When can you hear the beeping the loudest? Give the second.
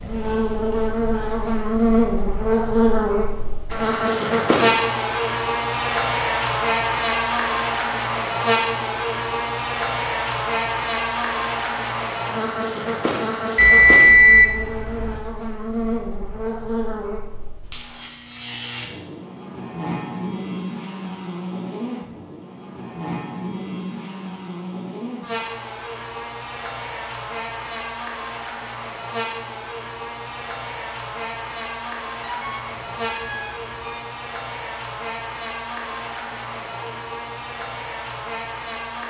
14 s.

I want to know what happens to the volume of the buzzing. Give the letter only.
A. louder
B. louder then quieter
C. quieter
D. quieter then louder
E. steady
C.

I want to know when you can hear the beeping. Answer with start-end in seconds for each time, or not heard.
13.6-15.2, 32.2-34.0.